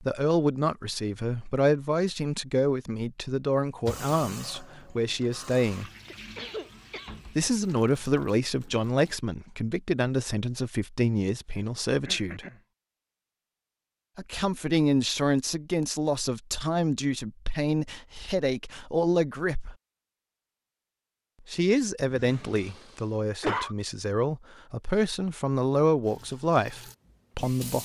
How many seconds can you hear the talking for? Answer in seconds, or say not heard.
23 s.